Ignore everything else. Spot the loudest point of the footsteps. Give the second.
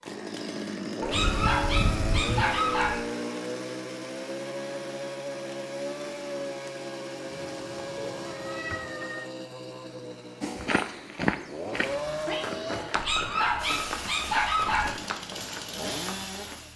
11 s.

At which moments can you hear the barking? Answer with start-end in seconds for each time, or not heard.
1.0-3.0, 12.9-14.9.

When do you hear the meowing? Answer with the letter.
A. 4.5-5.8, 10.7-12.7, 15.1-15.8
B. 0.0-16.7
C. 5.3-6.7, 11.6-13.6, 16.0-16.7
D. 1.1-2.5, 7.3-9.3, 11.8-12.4
D.